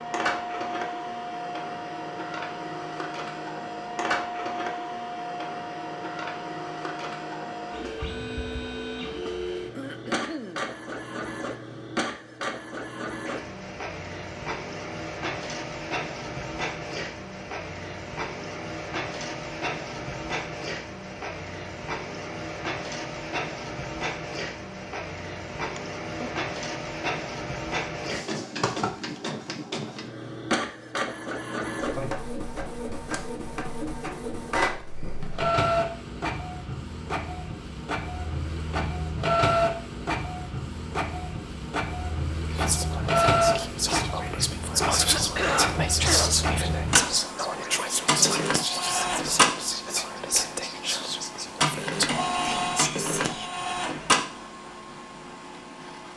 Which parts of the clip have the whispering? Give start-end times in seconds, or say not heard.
42.4-53.5.